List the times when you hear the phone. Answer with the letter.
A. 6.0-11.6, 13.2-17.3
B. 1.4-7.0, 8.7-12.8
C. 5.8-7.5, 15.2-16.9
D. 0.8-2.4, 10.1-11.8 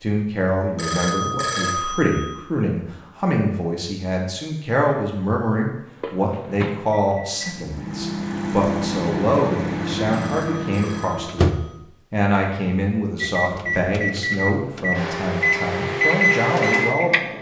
D.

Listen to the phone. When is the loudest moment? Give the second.
2 s.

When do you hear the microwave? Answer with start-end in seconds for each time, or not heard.
6.0-11.6, 13.2-17.3.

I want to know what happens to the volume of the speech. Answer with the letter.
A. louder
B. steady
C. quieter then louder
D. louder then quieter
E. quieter
B.